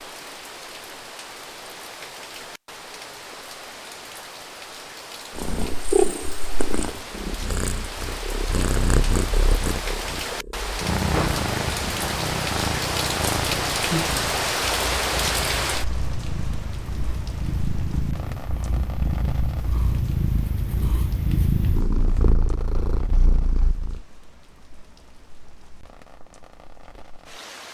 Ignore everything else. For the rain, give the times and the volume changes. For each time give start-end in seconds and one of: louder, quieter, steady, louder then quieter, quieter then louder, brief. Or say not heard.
0.0-27.7 louder then quieter.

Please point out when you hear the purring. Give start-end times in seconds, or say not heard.
5.3-24.0.